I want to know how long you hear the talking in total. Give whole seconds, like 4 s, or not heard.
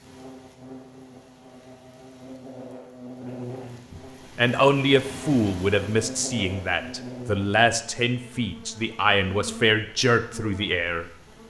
7 s.